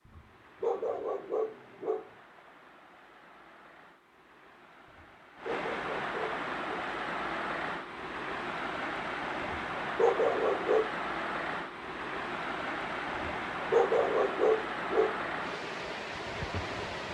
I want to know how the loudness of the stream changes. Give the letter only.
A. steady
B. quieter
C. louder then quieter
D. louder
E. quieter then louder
D.